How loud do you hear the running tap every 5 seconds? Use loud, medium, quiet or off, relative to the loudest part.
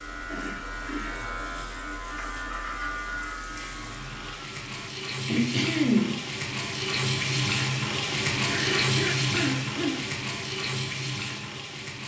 quiet, loud, medium.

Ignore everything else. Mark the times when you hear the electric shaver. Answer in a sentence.
The electric shaver can be heard from 0.0 to 4.9 s.